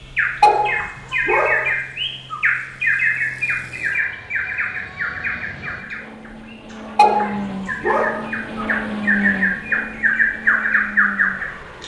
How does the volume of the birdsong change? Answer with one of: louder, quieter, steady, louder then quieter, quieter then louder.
quieter then louder.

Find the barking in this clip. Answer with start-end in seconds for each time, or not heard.
0.4-1.8, 7.0-8.3.